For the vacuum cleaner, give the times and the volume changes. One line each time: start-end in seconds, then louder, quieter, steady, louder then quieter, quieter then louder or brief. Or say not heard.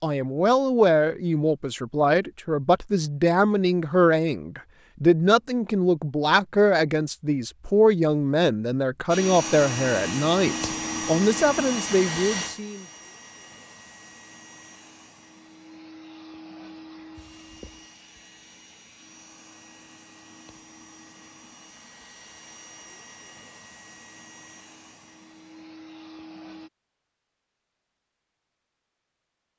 9.1-26.7 quieter.